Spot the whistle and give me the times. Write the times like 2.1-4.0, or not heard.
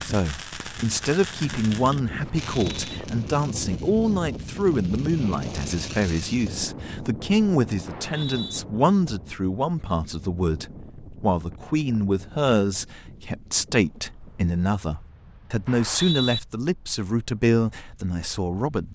2.2-3.0, 7.8-8.6, 15.7-16.4.